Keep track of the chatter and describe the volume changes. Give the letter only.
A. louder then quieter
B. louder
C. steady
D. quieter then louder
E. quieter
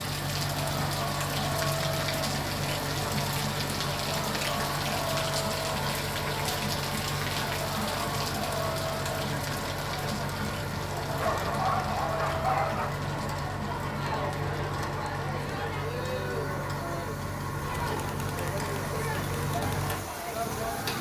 C.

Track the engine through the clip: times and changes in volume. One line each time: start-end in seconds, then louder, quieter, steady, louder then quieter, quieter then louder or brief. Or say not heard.
0.0-20.9 steady.